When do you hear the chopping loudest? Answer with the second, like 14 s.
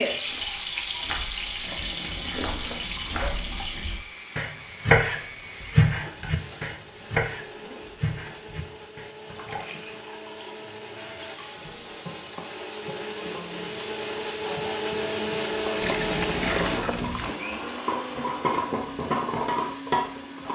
5 s.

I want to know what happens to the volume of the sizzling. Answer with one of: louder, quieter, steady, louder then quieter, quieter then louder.
quieter then louder.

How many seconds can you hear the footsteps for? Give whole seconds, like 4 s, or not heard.
not heard.